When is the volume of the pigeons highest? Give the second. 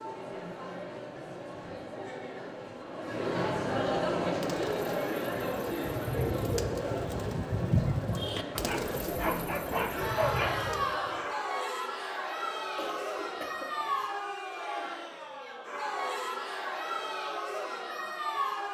8 s.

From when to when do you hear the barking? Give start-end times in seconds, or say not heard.
8.6-10.7.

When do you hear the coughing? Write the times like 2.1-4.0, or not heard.
12.8-14.1.